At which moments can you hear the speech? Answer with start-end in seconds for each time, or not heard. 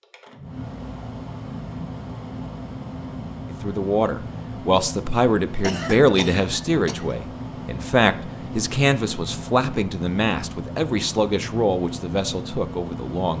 3.6-13.3.